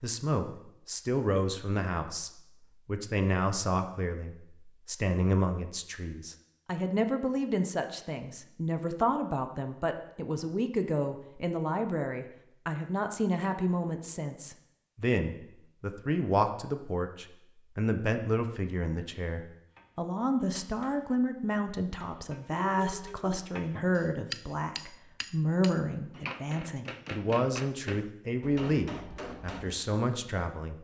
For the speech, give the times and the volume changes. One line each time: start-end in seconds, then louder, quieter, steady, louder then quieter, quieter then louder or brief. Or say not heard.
0.0-30.8 steady.